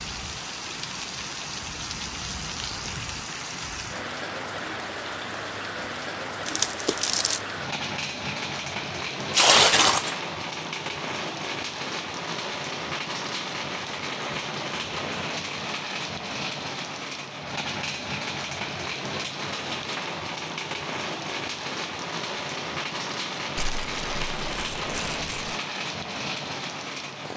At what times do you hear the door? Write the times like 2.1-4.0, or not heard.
not heard.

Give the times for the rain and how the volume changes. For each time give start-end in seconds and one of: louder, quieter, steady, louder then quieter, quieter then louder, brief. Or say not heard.
0.0-27.3 steady.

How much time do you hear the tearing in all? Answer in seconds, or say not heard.
4 s.